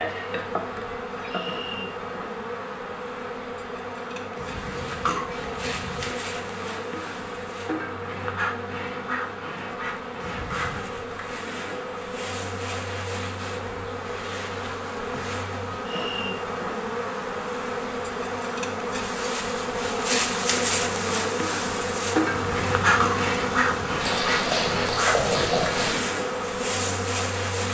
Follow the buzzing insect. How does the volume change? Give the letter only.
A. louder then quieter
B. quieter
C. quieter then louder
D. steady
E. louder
E.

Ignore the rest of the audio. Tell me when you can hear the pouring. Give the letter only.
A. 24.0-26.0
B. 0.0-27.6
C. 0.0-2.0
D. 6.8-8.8
A.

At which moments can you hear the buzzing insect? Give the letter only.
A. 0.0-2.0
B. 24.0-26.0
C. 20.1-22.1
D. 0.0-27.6
D.